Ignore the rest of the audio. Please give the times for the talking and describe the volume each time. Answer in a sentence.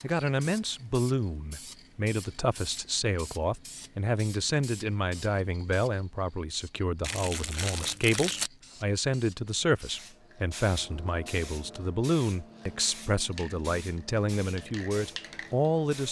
The talking can be heard from 0.0 to 16.0 s, at a steady volume.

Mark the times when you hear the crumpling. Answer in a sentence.
You can hear the crumpling from 7.0 to 8.5 s.